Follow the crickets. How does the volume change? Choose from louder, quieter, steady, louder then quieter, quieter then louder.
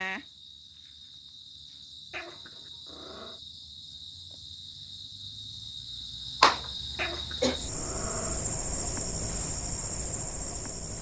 louder.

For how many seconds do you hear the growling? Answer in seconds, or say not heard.
3 s.